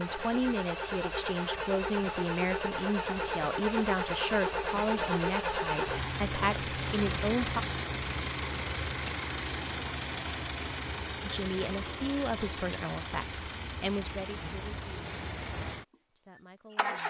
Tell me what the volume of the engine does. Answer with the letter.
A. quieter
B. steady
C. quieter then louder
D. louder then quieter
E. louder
A.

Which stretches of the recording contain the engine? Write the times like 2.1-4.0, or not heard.
0.0-17.0.